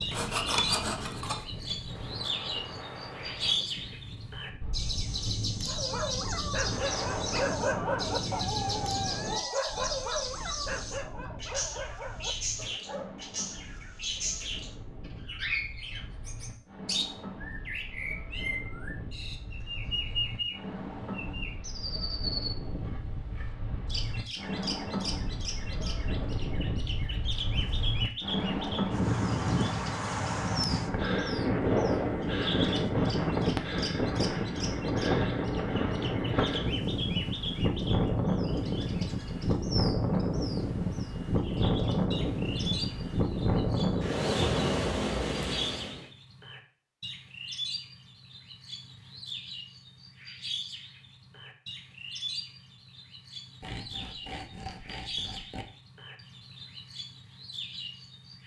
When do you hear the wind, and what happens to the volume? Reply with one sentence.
The wind can be heard from 0.0 to 46.0 s, getting quieter then louder.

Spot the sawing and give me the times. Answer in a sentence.
You can hear the sawing from 0.1 to 1.4 s and from 53.6 to 55.6 s.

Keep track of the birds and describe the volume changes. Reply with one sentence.
The volume of the birds goes down.